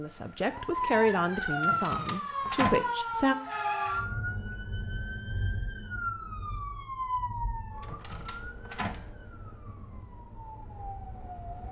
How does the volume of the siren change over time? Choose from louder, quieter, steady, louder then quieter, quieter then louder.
quieter.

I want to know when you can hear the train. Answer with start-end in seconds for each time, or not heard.
not heard.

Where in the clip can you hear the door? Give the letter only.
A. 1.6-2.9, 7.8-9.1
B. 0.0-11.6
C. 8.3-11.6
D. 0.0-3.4
A.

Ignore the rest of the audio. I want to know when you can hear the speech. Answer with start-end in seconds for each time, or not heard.
0.0-3.4.